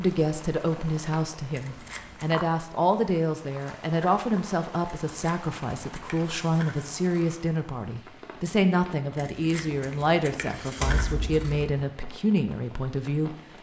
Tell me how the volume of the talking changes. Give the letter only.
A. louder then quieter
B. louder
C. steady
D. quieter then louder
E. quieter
C.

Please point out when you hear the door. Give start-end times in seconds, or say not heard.
10.8-11.8.